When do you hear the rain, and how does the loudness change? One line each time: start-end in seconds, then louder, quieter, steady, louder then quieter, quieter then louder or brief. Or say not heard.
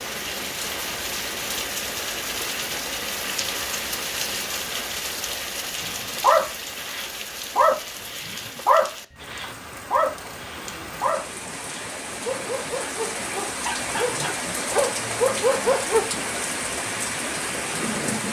0.0-18.2 quieter then louder.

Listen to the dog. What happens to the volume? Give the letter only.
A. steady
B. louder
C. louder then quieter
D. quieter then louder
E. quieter
D.